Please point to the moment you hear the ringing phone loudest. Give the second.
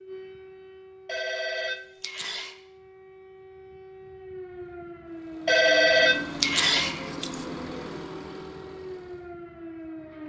6 s.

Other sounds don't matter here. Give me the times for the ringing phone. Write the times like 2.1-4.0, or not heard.
1.1-2.6, 5.5-7.5.